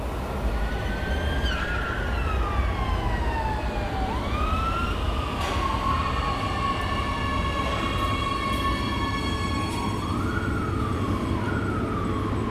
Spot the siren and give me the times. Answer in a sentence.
You can hear the siren from 0.0 to 12.4 s.